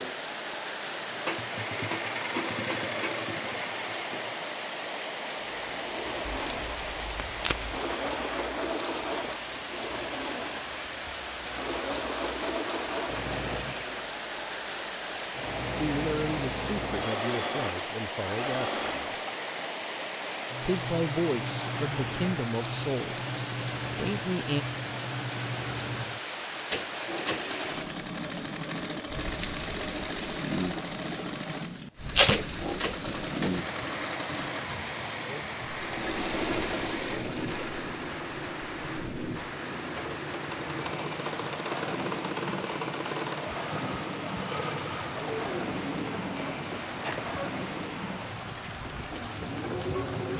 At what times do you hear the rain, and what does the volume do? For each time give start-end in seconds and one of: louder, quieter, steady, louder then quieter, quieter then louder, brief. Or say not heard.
0.0-50.3 steady.